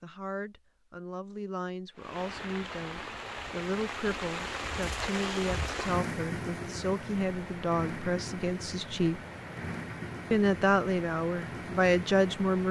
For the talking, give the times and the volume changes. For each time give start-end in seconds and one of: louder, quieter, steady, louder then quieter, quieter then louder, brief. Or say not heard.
0.0-9.2 louder
10.3-12.6 brief.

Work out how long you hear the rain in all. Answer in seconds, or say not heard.
11 s.